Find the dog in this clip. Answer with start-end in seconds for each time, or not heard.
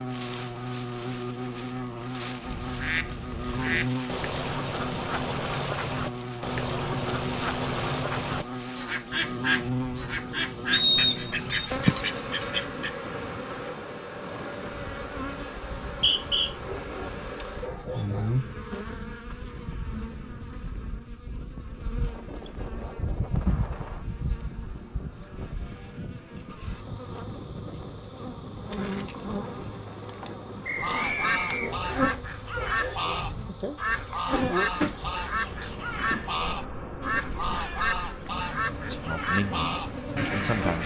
16.6-18.4, 31.5-33.4.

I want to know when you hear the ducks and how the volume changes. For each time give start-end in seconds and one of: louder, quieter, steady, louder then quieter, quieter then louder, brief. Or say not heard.
2.4-12.9 steady
30.8-40.8 steady.